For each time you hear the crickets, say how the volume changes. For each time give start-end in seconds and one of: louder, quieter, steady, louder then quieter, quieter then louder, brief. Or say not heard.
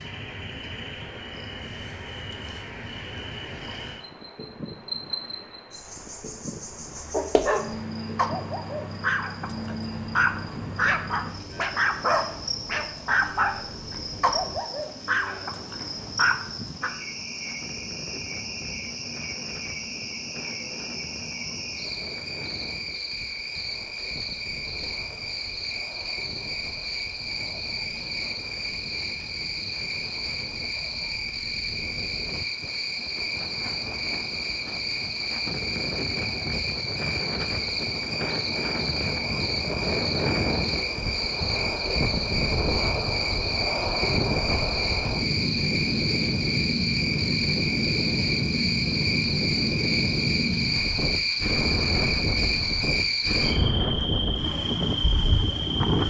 0.0-56.0 louder.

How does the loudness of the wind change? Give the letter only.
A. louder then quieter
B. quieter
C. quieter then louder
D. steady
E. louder
E.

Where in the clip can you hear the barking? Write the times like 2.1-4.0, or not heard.
7.1-16.9.